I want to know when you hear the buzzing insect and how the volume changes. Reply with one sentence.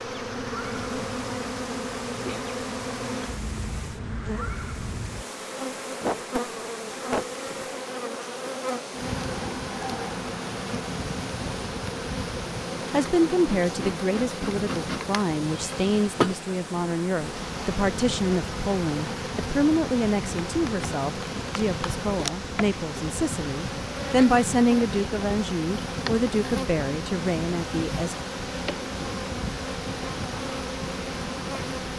You can hear the buzzing insect from 0.0 to 31.9 s, at a steady volume.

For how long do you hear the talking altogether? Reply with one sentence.
The talking can be heard for 15 seconds in total.